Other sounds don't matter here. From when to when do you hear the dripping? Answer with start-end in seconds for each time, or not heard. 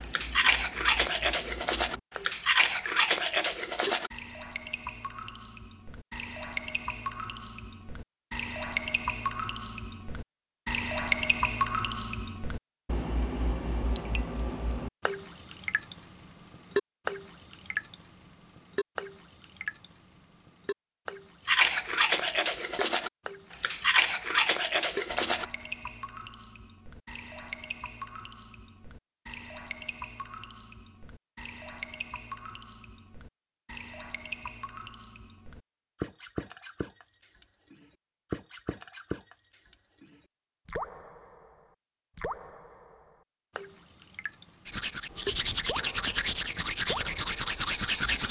0.0-48.2.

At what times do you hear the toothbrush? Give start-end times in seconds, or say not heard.
0.0-4.1, 21.4-25.6, 44.6-48.2.